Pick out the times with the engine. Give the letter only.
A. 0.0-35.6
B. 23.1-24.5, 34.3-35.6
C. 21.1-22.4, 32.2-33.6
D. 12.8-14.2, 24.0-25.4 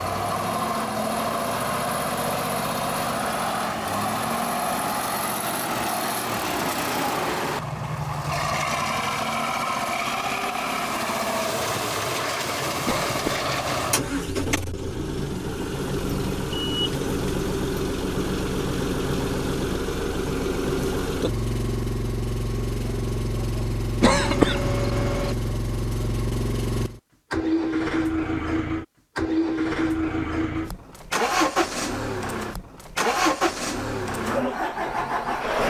A.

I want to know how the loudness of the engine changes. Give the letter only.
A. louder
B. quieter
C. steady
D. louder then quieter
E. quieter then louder
C.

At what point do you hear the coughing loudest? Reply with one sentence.
The volume of the coughing peaks at 24 seconds.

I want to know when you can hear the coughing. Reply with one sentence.
You can hear the coughing from 12.8 to 14.2 s and from 24.0 to 25.4 s.